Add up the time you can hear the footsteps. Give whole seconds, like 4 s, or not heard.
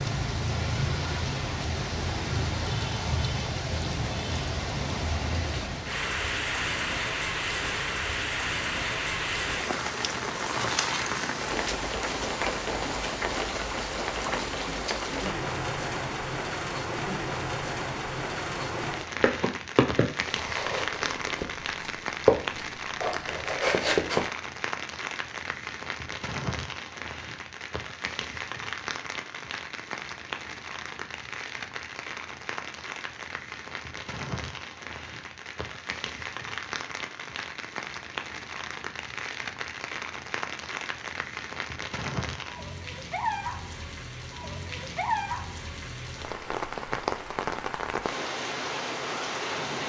5 s.